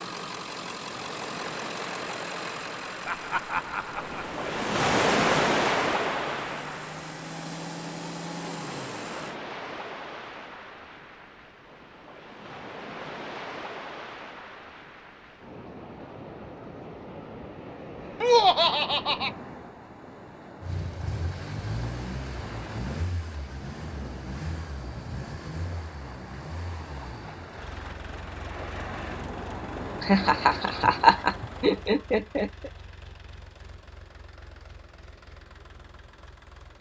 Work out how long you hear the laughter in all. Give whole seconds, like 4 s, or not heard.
5 s.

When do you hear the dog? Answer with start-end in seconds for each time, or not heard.
not heard.